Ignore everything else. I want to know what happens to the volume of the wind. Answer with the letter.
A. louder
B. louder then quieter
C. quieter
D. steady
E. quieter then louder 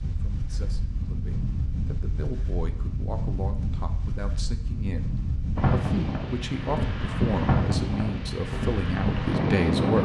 A.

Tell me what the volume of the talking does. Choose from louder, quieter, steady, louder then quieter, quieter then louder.
louder.